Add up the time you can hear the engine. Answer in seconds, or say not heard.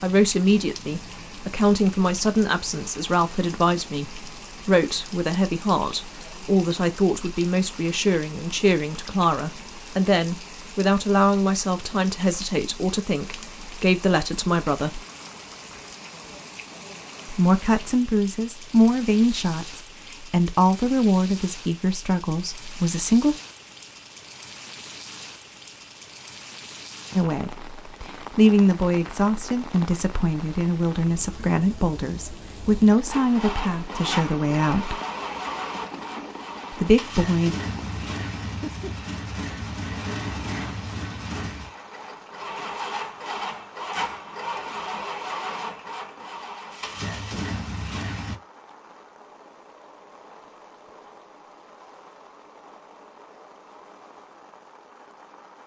15 s.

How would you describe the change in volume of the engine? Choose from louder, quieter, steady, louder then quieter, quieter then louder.
steady.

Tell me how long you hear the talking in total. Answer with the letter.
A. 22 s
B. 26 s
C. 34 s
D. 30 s
D.